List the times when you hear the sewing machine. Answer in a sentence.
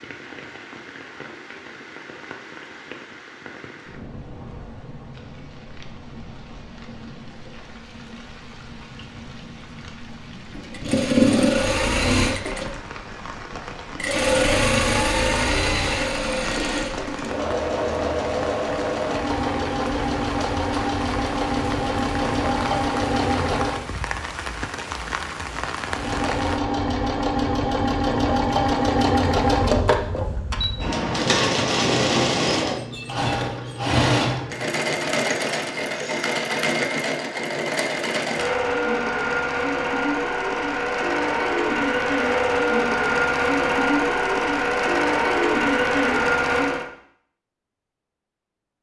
You can hear the sewing machine from 10.5 to 23.9 s and from 25.9 to 46.9 s.